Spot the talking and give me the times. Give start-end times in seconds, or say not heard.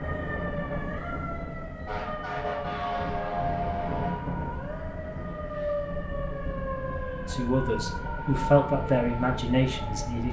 7.2-10.2.